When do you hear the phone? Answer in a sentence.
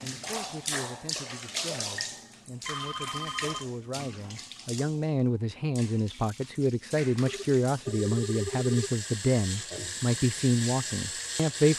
You can hear the phone from 2.6 to 3.6 s and from 7.2 to 8.9 s.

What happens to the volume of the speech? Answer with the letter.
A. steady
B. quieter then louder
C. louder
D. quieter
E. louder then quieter
C.